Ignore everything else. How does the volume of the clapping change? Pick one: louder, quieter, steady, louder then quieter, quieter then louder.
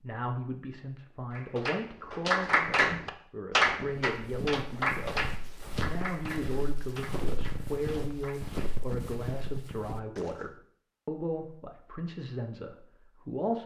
quieter.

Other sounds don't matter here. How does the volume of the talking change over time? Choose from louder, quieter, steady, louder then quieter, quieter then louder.
steady.